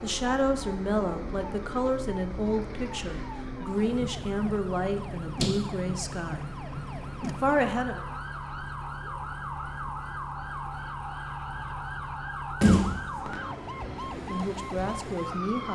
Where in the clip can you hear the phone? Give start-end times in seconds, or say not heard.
not heard.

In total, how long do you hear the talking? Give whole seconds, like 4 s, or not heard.
9 s.